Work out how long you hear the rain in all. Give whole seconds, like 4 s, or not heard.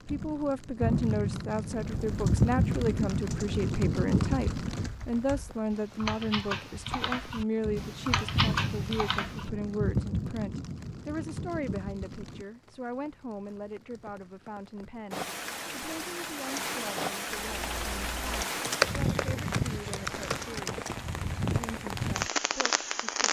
23 s.